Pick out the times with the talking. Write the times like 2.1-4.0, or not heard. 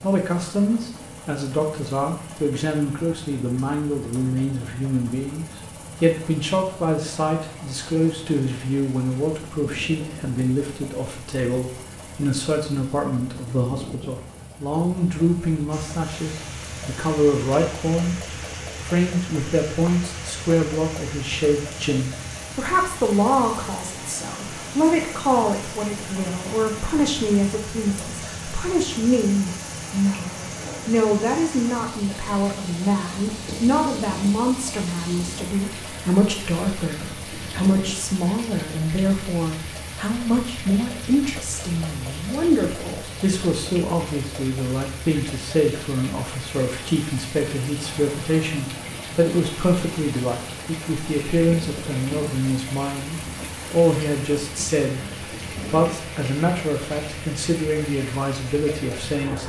0.0-18.1, 18.8-59.4.